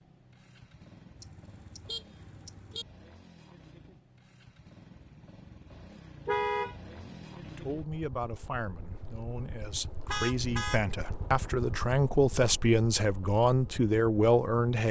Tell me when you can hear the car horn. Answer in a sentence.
You can hear the car horn from 1.1 to 2.9 s, from 6.2 to 7.2 s and from 10.1 to 10.8 s.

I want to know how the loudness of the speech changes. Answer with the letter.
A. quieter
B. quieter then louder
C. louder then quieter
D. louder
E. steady
D.